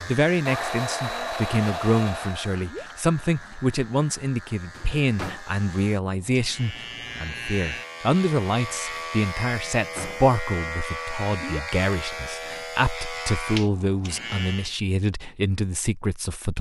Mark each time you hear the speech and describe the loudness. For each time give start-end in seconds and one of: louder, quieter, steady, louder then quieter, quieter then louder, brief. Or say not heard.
0.1-16.5 steady.